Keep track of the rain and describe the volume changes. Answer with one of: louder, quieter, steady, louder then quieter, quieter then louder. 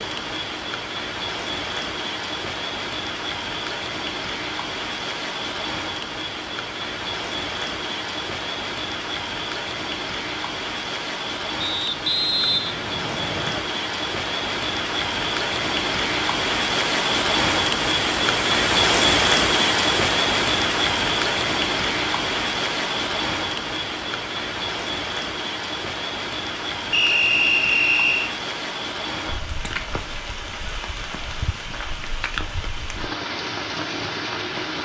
louder then quieter.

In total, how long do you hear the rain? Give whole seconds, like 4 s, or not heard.
35 s.